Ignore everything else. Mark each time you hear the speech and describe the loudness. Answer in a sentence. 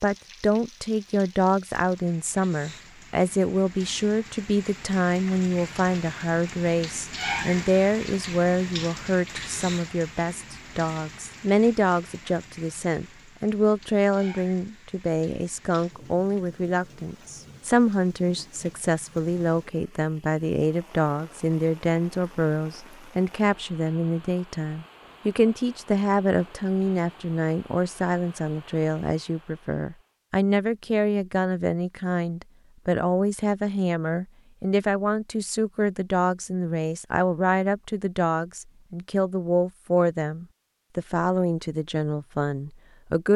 The speech can be heard from 0.0 to 43.3 s, at a steady volume.